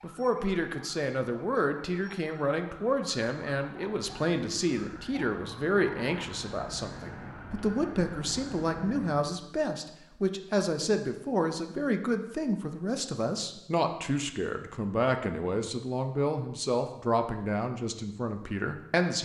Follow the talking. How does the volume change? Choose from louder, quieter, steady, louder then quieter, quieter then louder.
steady.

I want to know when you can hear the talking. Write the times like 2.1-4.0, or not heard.
0.0-19.1.